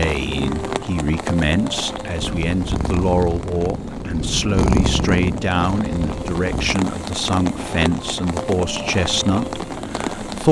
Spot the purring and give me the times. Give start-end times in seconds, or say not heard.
2.1-6.8.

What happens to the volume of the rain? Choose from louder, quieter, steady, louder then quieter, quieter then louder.
quieter then louder.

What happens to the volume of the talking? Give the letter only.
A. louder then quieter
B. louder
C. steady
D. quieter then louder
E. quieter
C.